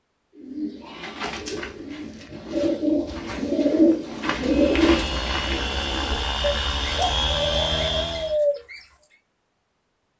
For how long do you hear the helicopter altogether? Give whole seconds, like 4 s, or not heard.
4 s.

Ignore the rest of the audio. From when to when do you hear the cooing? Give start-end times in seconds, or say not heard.
0.3-8.8.